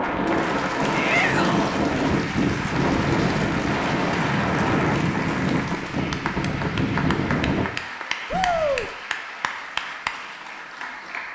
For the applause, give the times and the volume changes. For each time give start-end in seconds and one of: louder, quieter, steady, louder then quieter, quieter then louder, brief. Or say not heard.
0.0-11.3 steady.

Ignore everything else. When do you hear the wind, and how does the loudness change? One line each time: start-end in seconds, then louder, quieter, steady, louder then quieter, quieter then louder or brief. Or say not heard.
0.0-7.7 steady.